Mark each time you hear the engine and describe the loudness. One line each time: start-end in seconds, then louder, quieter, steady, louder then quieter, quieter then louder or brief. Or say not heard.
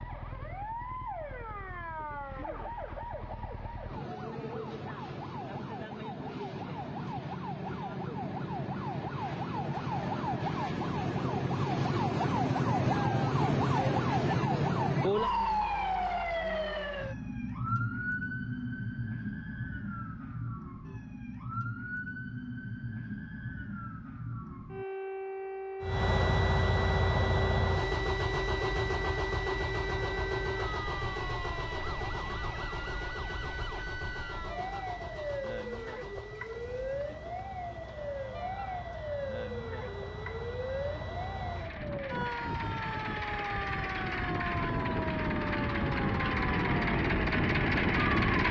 25.8-48.4 quieter then louder.